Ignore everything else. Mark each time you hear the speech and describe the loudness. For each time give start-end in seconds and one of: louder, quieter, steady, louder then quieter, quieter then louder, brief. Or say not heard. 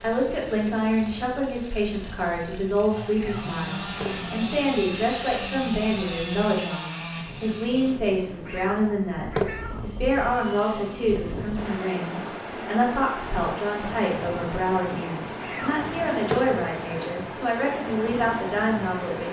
0.0-19.2 steady.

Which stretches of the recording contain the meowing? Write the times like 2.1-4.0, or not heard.
3.1-4.3, 8.4-9.8, 15.4-16.4.